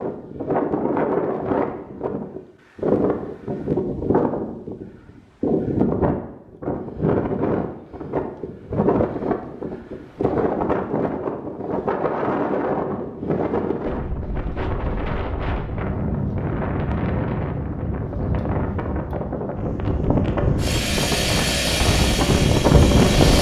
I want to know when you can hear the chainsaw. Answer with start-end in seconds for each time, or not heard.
20.6-23.3.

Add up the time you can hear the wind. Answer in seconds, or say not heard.
23 s.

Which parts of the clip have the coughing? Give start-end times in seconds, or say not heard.
not heard.